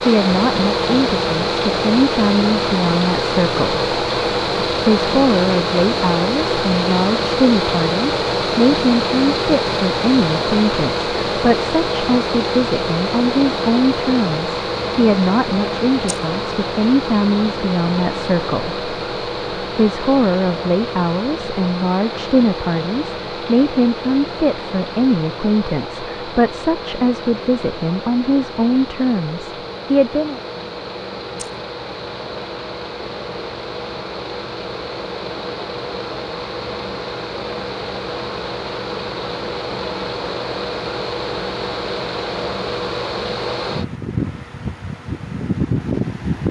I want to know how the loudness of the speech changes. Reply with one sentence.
The loudness of the speech stays about the same.